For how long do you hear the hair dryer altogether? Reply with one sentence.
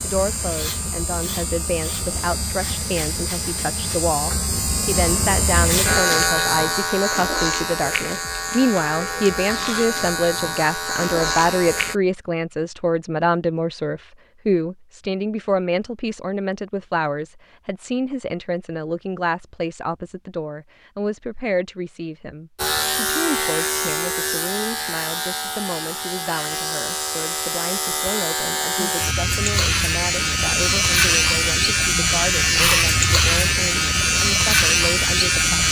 You can't hear the hair dryer here.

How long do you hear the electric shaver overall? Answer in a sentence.
You can hear the electric shaver for 25 seconds altogether.